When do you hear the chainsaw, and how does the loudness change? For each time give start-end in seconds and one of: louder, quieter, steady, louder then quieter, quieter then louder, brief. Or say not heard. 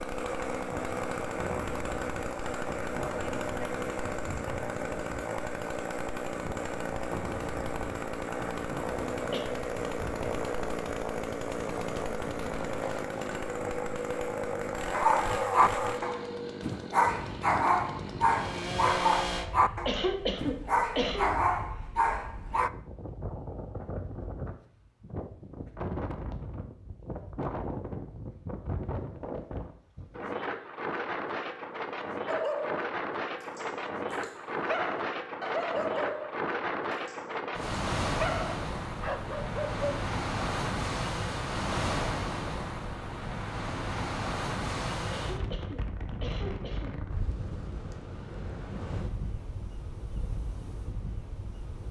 0.0-19.5 steady.